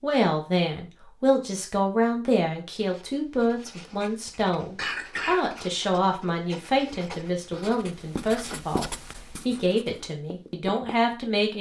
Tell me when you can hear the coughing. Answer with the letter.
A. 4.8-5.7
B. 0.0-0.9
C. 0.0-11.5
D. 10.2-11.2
A.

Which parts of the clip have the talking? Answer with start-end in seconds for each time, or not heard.
0.0-11.5.